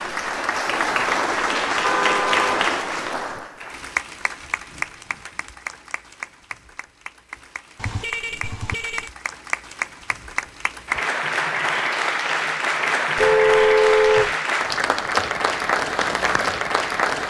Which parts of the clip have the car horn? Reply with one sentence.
You can hear the car horn from 1.8 to 2.6 s, from 7.8 to 9.1 s and from 13.2 to 14.3 s.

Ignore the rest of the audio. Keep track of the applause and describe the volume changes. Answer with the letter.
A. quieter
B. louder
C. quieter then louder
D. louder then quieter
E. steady
C.